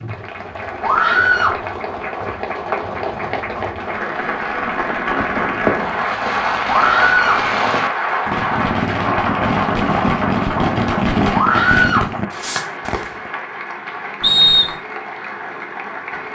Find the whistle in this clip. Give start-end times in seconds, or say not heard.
14.2-14.8.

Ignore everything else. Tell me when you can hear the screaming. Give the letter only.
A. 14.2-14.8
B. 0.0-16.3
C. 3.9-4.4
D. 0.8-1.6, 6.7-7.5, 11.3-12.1
D.